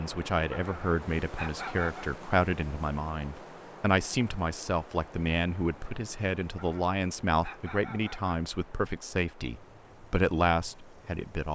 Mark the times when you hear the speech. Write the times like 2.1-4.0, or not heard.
0.0-11.5.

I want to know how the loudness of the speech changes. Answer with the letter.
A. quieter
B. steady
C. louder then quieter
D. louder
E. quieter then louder
B.